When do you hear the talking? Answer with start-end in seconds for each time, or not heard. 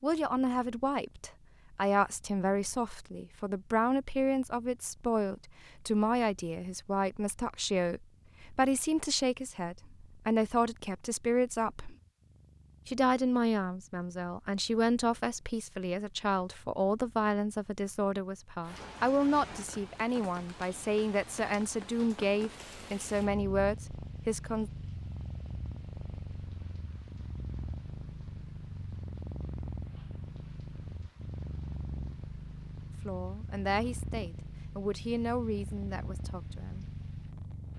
0.0-11.9, 12.8-24.7, 33.0-36.9.